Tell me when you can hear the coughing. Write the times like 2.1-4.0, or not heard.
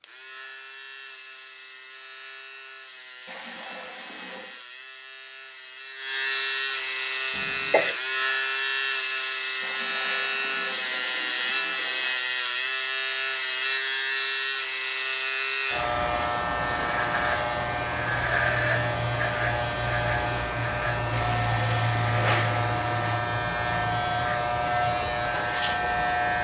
7.3-8.0.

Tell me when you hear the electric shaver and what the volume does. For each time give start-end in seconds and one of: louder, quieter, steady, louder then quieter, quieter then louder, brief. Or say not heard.
0.0-26.3 louder.